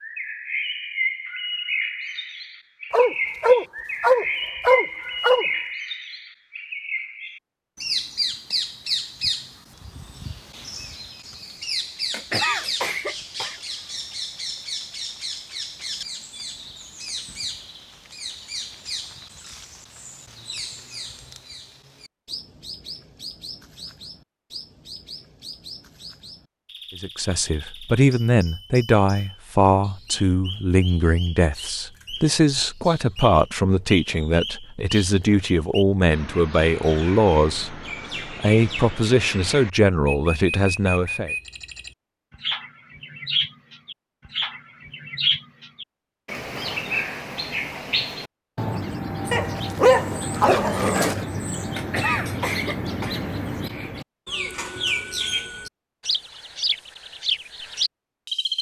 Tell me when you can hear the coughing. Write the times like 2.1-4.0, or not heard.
12.1-13.6, 51.8-53.2.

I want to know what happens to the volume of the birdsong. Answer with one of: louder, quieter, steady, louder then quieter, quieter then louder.
quieter then louder.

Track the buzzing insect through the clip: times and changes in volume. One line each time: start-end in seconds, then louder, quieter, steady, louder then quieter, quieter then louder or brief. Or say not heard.
not heard.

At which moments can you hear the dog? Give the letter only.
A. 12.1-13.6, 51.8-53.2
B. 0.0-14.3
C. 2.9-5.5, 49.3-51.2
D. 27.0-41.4
C.